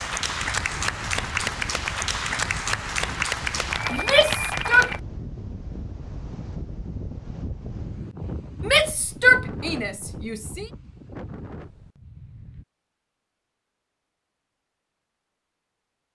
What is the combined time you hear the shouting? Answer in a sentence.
You can hear the shouting for 3 seconds altogether.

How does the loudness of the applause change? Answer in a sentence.
The loudness of the applause stays about the same.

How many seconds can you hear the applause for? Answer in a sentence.
You can hear the applause for 5 seconds altogether.